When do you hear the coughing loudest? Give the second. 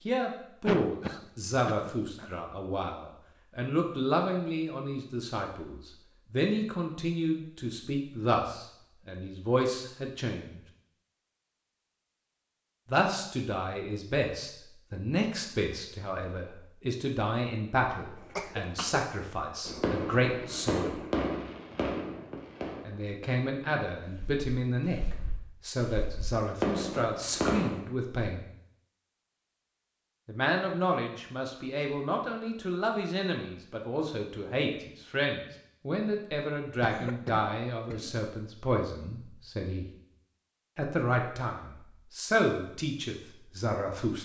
1 s.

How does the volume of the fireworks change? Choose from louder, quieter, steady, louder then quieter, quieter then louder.
quieter then louder.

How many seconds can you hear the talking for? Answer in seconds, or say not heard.
37 s.